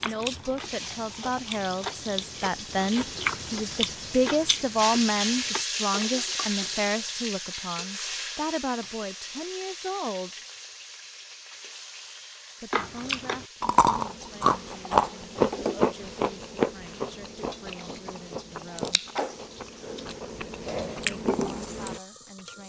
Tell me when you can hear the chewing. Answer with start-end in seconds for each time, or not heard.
0.0-5.7, 12.7-22.0.